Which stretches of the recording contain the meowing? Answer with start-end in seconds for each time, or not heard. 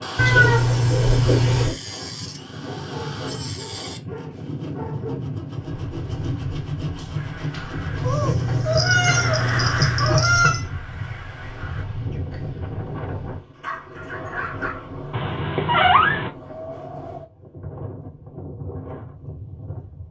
0.1-1.8, 8.0-10.7, 15.1-16.3.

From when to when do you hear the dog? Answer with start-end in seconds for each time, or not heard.
2.6-5.2, 13.6-14.8.